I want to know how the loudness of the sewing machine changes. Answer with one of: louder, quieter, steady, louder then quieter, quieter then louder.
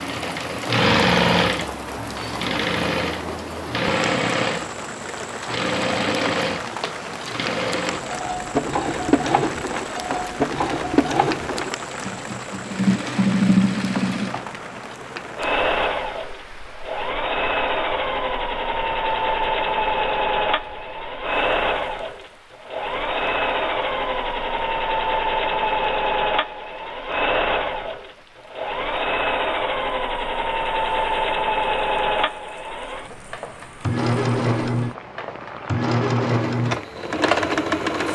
steady.